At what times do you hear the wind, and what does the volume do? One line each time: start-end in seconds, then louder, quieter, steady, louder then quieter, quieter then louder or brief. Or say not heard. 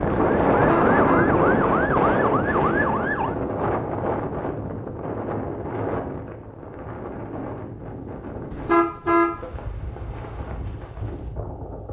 0.0-11.8 quieter.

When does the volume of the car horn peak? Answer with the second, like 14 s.
9 s.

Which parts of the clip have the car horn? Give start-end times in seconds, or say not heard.
0.5-1.3, 8.5-9.3.